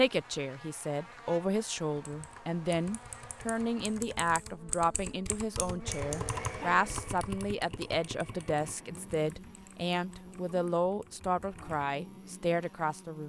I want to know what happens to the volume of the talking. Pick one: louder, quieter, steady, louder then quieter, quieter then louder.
steady.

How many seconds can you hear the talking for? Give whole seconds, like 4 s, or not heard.
13 s.